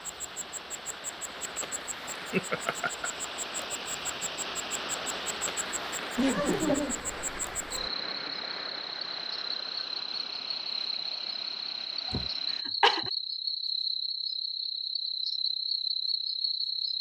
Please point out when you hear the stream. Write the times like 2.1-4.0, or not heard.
0.0-12.7.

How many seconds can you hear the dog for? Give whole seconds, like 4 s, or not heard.
not heard.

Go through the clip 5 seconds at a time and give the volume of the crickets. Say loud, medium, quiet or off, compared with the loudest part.
medium, medium, loud, loud.